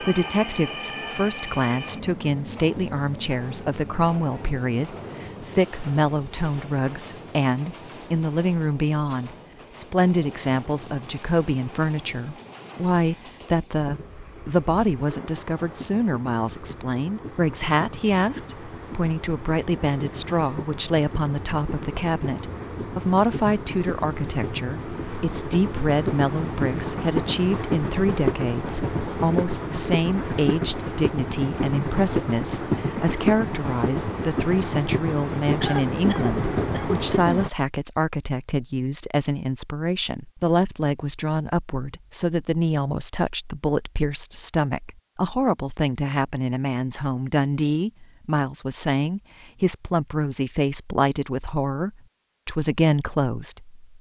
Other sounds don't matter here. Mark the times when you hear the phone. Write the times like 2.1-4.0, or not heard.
not heard.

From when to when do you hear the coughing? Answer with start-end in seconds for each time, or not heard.
35.6-37.4.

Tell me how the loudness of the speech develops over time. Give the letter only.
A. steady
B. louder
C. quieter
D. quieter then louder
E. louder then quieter
A.